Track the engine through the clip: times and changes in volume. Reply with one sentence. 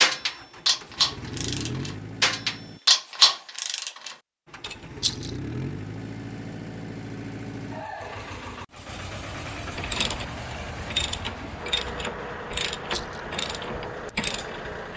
You can hear the engine briefly from 0.0 to 2.8 s; and from 4.5 to 14.9 s, at a steady volume.